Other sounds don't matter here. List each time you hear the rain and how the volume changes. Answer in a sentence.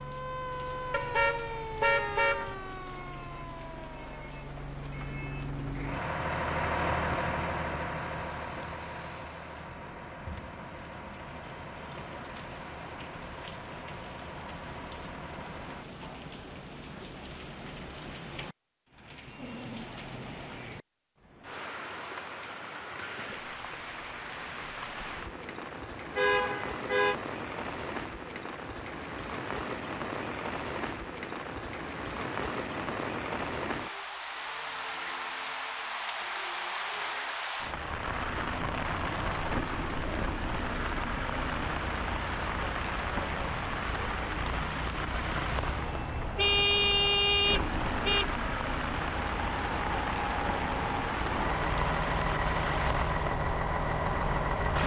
The rain can be heard from 0.0 to 54.8 s, getting louder.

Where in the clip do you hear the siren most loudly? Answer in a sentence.
The loudest moment of the siren is at 1 second.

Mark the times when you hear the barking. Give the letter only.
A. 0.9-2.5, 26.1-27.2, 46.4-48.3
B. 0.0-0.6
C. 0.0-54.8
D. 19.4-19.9
D.